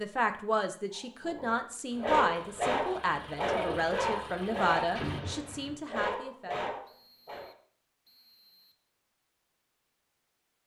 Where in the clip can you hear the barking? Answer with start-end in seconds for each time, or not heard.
1.2-7.5.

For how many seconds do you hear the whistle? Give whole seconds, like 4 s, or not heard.
2 s.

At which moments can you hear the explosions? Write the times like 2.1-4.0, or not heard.
5.0-5.8.